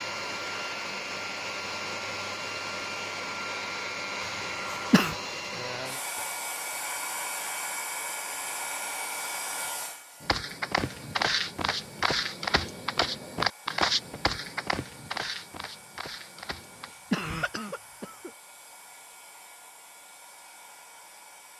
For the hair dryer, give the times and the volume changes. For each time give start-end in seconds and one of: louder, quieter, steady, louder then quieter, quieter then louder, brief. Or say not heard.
0.0-21.5 quieter.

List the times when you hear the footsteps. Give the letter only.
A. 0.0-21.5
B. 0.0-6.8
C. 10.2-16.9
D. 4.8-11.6
C.